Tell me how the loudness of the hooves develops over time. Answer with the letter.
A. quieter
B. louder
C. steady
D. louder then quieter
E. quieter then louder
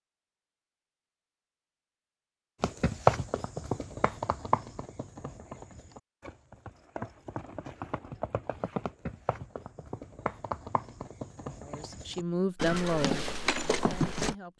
E.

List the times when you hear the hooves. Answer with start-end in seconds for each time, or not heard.
2.6-14.3.